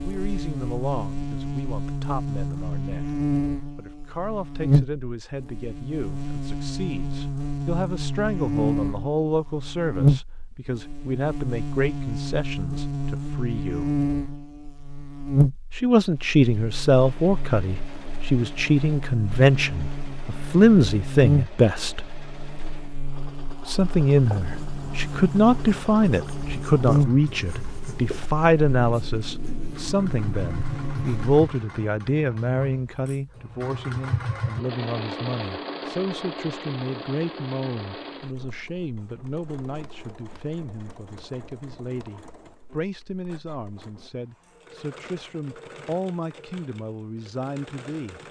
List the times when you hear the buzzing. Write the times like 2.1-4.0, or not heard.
0.0-31.4.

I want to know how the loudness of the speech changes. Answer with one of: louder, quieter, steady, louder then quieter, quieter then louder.
louder then quieter.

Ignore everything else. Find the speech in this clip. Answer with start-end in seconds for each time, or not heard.
0.0-13.8, 15.8-22.0, 23.6-48.2.